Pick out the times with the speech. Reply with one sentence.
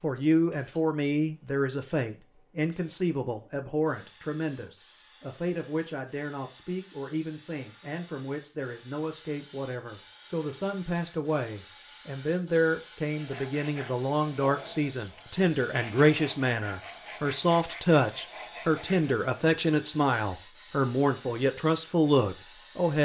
You can hear the speech from 0.0 to 23.0 s.